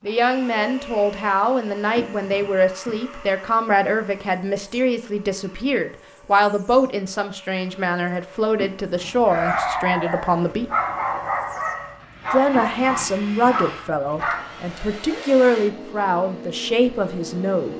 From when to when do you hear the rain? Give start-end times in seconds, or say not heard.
not heard.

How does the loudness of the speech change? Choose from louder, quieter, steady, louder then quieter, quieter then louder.
steady.